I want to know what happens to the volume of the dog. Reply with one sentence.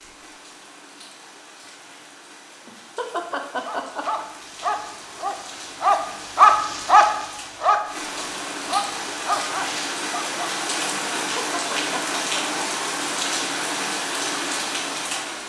The loudness of the dog goes up, then down.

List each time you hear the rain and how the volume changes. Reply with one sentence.
You can hear the rain from 0.0 to 15.4 s, getting louder.